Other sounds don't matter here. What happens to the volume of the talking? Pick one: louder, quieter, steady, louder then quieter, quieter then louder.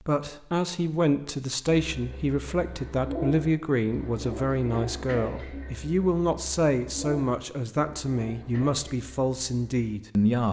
steady.